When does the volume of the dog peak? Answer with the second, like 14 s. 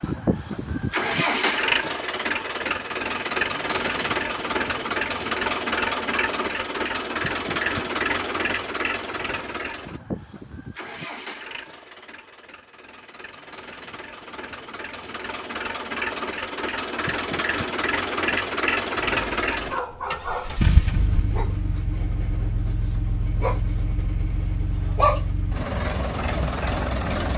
25 s.